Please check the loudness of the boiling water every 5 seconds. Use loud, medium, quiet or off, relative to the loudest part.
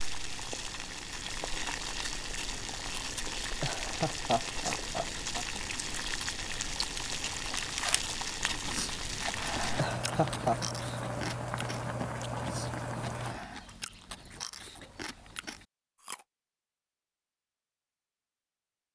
loud, loud, loud, off.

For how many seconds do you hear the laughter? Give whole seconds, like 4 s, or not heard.
3 s.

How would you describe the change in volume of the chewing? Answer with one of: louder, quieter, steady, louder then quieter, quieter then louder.
quieter.